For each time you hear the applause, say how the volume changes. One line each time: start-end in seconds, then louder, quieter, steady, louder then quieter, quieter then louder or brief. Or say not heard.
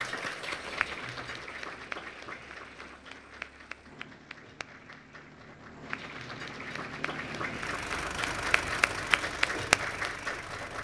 0.0-10.8 quieter then louder.